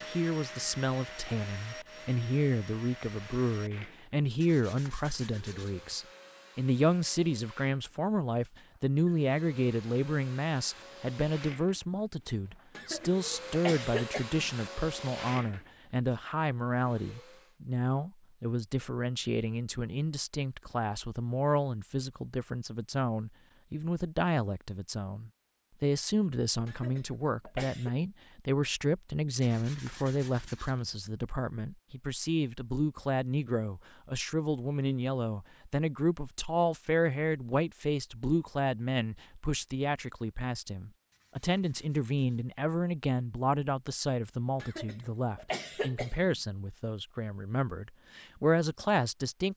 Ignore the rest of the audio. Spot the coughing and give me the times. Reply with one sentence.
You can hear the coughing from 12.8 to 14.5 s, from 26.6 to 27.9 s and from 44.5 to 46.4 s.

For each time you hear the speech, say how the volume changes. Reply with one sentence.
You can hear the speech from 0.1 to 49.5 s, at a steady volume.